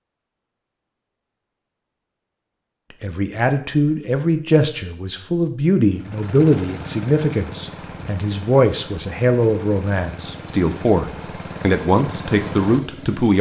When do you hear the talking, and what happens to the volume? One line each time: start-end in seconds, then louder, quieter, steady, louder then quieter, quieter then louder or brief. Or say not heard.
3.0-13.3 steady.